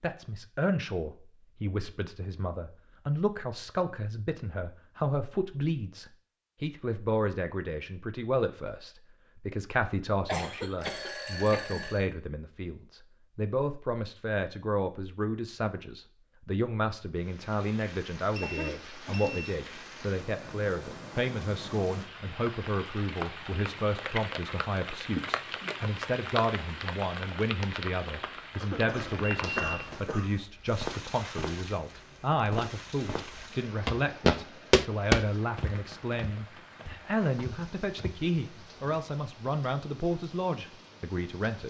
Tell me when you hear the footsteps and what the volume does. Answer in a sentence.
You can hear the footsteps from 28.9 to 38.1 s, getting louder then quieter.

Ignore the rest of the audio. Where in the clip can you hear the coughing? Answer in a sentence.
The coughing can be heard from 10.2 to 11.8 s, from 18.4 to 19.3 s and from 28.6 to 30.4 s.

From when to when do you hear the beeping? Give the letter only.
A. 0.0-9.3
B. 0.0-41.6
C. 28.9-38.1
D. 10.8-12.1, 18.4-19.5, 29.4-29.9
D.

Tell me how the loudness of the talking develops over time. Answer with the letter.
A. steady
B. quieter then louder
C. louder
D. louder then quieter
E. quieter
A.